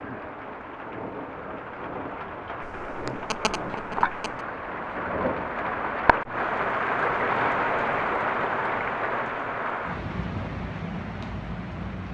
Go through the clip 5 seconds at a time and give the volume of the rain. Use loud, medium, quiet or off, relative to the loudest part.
medium, loud, medium.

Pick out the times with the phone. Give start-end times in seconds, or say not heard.
2.6-4.5.